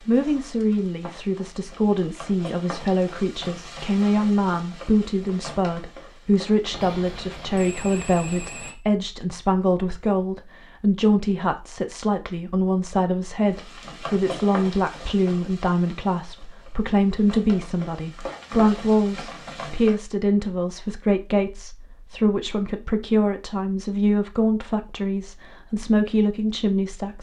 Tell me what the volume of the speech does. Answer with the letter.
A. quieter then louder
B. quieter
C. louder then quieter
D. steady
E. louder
D.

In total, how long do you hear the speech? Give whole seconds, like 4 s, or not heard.
27 s.